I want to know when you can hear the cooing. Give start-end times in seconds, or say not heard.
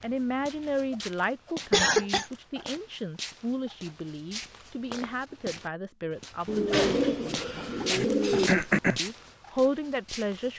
6.5-8.5.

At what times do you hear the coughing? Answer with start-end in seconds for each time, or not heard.
1.7-2.2, 8.0-9.0.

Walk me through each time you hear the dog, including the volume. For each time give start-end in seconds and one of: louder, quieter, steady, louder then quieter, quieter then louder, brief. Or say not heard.
not heard.